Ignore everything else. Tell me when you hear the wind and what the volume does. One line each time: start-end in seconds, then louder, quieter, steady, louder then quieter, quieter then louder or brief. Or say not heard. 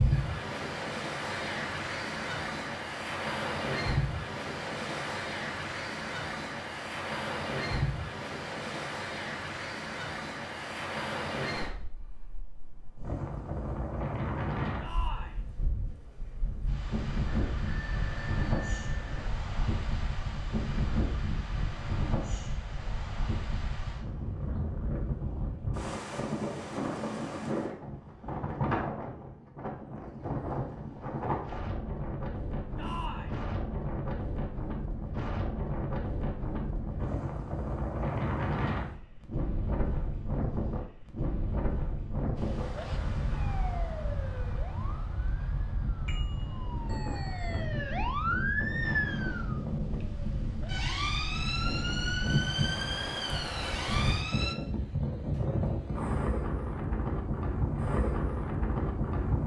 0.0-59.4 steady.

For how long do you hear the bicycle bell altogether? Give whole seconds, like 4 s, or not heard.
4 s.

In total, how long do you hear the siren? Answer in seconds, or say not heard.
12 s.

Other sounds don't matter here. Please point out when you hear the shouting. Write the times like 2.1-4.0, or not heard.
14.8-15.4, 32.8-33.4.